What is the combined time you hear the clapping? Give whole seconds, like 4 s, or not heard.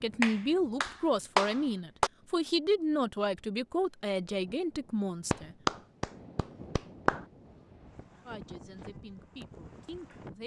4 s.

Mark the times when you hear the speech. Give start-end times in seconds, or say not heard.
0.0-5.5, 8.2-10.4.